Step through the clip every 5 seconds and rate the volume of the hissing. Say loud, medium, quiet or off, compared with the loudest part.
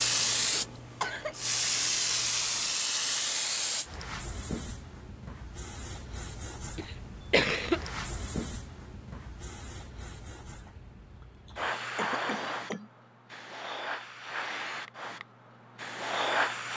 loud, quiet, medium, loud.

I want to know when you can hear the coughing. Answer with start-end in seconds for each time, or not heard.
0.4-1.4, 6.8-7.8, 11.4-12.9.